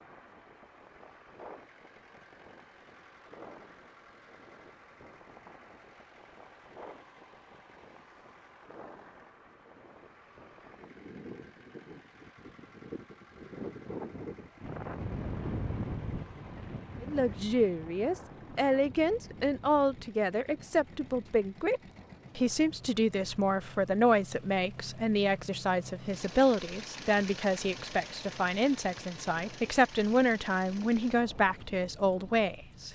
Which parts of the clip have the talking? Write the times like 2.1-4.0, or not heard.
17.0-32.9.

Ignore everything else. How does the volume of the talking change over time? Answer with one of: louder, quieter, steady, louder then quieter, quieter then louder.
steady.